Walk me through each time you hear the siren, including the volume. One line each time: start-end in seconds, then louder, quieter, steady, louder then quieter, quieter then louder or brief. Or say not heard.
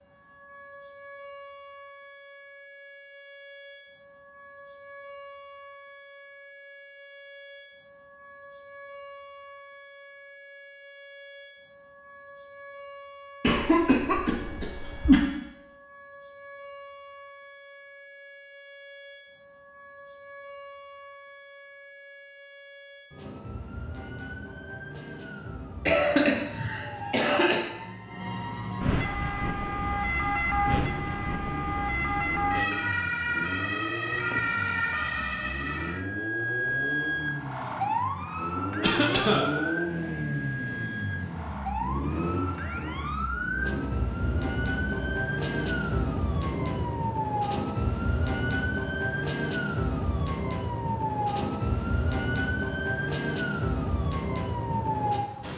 0.0-55.5 louder.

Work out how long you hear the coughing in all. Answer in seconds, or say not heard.
4 s.